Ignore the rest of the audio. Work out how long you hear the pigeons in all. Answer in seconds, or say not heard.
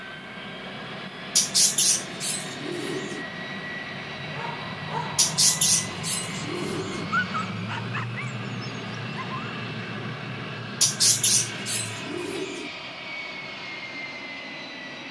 6 s.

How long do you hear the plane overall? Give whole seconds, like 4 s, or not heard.
15 s.